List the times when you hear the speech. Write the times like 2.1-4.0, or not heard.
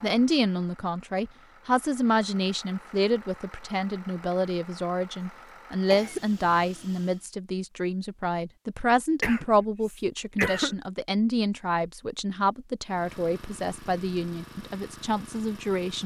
0.0-16.0.